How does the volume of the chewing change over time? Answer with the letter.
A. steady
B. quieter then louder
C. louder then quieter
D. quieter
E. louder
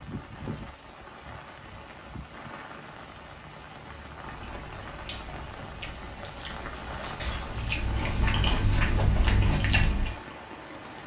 E.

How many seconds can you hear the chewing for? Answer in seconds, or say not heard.
6 s.